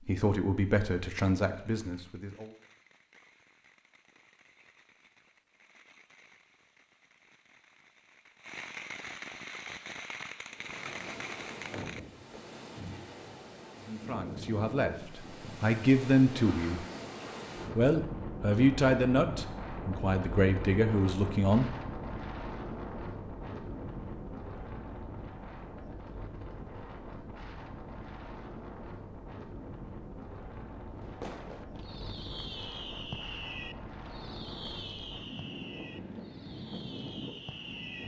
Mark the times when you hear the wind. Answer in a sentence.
You can hear the wind from 10.4 to 38.0 s.